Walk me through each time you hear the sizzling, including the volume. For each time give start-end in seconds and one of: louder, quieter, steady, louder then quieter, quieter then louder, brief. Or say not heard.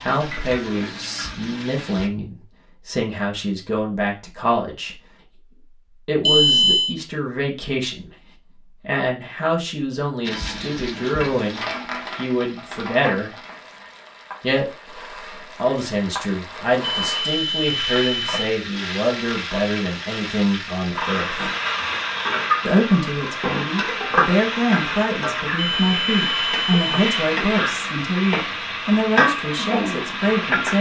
0.0-2.1 brief
10.2-30.7 louder.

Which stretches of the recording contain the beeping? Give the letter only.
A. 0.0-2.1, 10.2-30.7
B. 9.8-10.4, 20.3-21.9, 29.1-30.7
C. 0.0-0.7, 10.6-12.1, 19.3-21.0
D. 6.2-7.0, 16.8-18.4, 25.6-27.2
D.